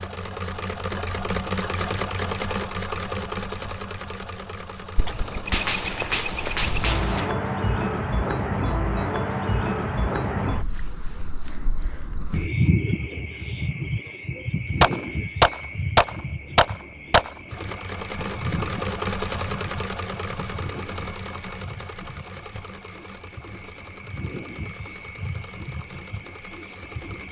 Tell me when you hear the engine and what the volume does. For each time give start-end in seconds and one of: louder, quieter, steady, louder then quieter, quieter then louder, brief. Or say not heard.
0.0-7.3 quieter
17.4-27.2 quieter.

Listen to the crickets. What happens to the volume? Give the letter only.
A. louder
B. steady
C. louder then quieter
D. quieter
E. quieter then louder
D.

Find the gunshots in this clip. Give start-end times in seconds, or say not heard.
5.5-7.3, 14.8-17.8.